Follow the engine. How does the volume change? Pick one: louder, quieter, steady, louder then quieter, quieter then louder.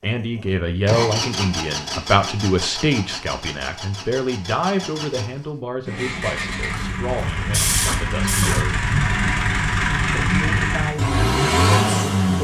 quieter then louder.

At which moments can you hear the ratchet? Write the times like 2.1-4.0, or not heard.
6.8-8.7.